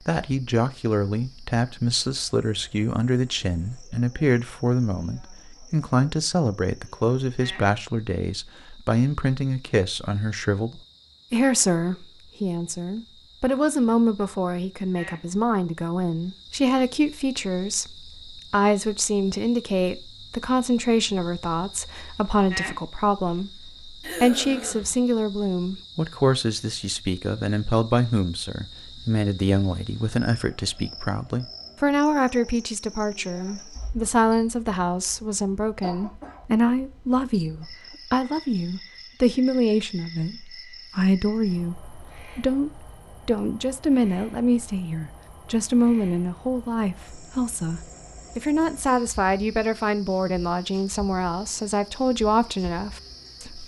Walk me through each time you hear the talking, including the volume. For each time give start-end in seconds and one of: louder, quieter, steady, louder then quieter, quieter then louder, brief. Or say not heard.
0.1-53.6 steady.